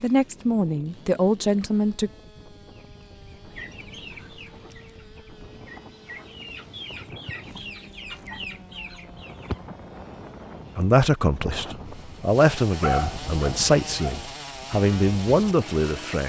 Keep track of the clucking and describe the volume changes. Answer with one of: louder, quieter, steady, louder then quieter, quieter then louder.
quieter then louder.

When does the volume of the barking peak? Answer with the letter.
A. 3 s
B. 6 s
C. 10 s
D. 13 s
D.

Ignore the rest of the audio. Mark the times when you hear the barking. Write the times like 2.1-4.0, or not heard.
12.7-14.2.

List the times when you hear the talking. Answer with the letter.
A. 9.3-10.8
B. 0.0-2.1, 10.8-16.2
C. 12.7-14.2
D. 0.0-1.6
B.